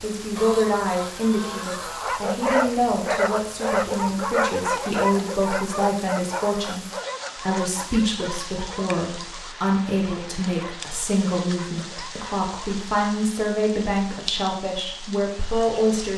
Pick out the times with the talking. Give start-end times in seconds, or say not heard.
0.0-16.1.